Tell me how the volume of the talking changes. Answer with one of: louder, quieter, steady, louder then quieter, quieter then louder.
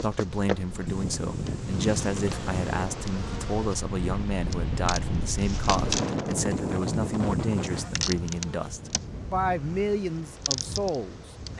steady.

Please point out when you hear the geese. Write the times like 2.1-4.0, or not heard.
0.8-2.9, 6.3-8.1.